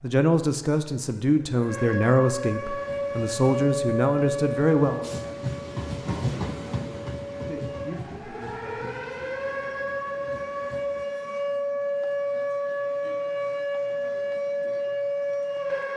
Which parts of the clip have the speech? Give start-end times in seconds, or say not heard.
0.0-9.2.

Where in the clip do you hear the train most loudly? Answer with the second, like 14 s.
6 s.